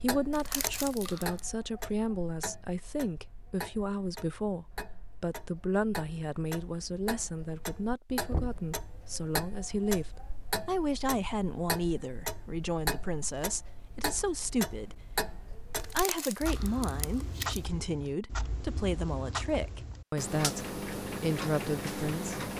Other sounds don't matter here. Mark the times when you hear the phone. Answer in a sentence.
The phone can't be heard in this clip.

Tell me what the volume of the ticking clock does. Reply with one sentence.
The loudness of the ticking clock goes up.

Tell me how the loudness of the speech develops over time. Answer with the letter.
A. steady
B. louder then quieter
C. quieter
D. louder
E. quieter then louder
A.